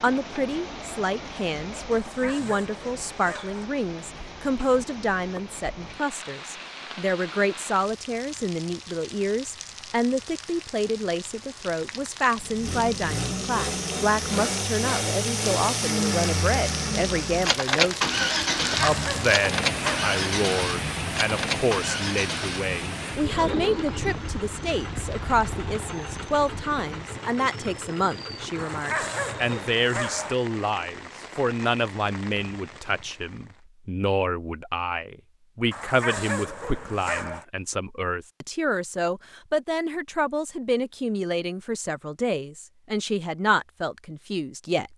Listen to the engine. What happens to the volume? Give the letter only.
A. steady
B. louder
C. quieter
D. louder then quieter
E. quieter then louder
C.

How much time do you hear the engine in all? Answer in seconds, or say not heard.
17 s.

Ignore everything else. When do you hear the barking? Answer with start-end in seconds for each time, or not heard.
1.9-3.6, 18.7-20.1, 28.6-30.4, 35.7-37.5.